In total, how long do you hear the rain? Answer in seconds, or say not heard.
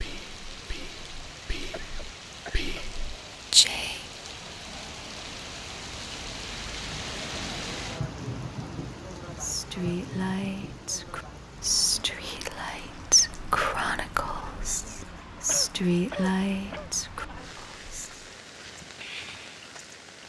20 s.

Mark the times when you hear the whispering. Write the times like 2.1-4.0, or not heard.
0.0-4.0, 9.3-18.3.